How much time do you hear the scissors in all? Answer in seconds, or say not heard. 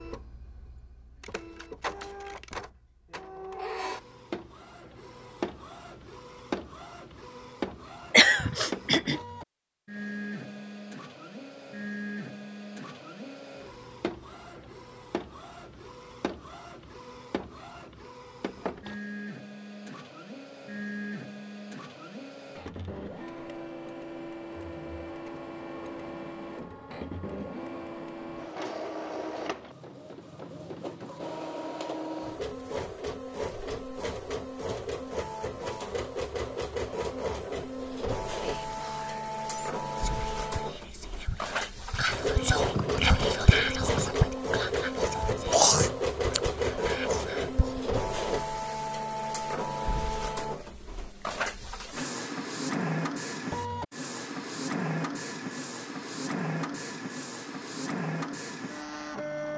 3 s.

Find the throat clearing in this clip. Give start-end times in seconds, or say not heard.
8.1-9.2, 45.5-46.4.